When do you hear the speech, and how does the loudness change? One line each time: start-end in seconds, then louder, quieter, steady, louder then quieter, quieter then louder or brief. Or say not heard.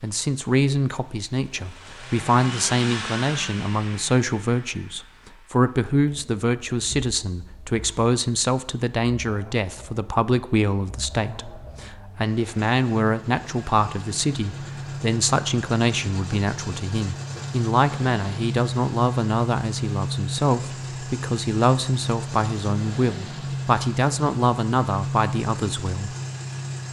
0.0-26.1 steady.